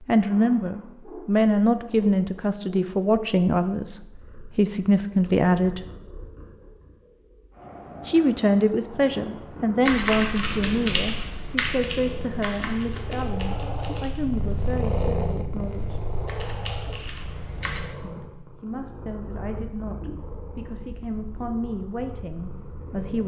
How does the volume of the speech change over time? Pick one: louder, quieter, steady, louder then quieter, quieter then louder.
quieter.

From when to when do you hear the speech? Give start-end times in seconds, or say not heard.
0.1-5.8, 8.1-16.0, 18.0-23.2.